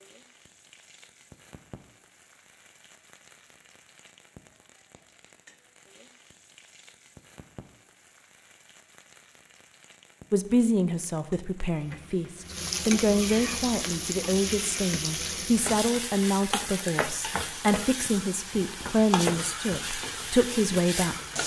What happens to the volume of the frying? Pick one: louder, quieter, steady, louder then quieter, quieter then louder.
louder.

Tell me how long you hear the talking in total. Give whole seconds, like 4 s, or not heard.
11 s.